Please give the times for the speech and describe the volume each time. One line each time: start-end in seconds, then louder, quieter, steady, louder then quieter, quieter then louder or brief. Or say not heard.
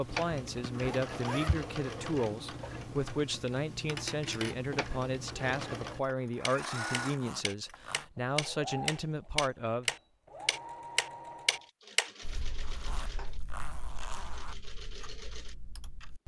0.0-9.9 steady.